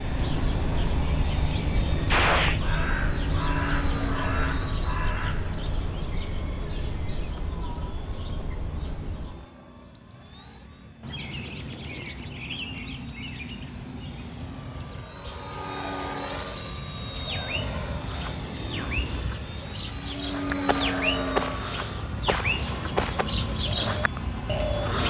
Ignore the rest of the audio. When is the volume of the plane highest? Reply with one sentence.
The loudest moment of the plane is at 21 seconds.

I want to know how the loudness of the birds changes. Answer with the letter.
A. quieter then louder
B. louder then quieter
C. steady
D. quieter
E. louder
A.